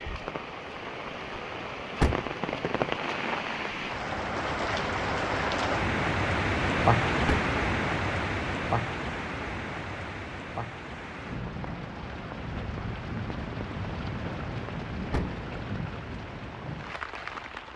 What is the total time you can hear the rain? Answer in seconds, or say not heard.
18 s.